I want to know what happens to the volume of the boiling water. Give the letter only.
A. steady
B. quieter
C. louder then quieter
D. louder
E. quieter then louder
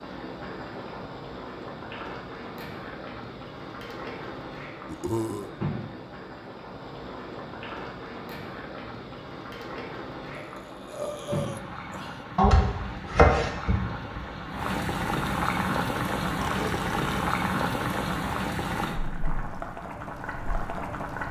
D.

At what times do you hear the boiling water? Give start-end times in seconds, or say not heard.
0.0-21.2.